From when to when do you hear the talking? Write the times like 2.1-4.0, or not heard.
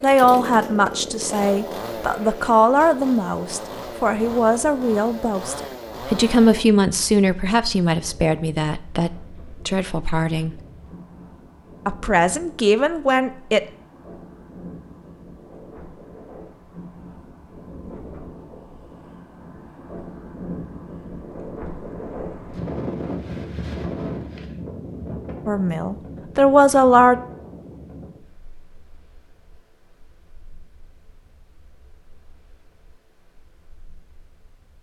0.0-10.6, 11.8-13.6, 25.4-27.1.